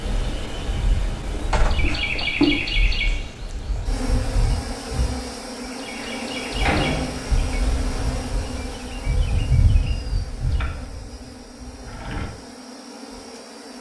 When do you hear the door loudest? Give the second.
7 s.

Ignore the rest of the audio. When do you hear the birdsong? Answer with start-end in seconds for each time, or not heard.
0.0-10.7.